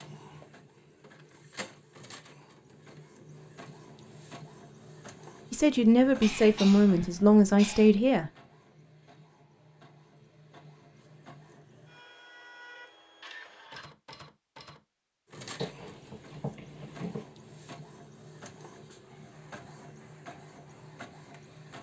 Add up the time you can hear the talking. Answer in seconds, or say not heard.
3 s.